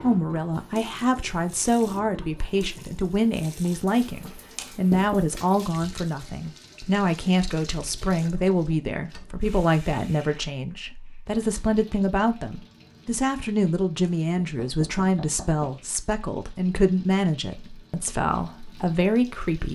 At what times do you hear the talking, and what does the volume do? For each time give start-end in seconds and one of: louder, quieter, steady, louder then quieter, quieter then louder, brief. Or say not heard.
0.0-19.7 steady.